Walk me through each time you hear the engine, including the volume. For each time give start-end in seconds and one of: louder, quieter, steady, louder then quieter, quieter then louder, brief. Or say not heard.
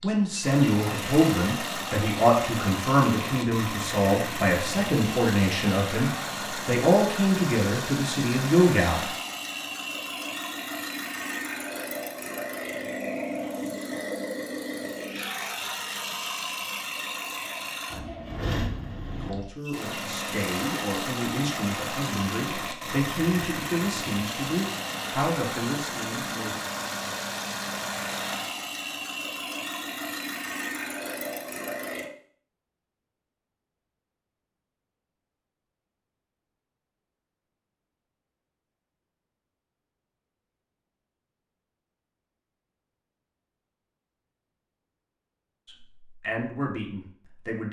0.0-32.1 steady.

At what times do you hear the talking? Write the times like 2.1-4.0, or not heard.
0.0-9.1, 19.2-26.6, 45.6-47.6.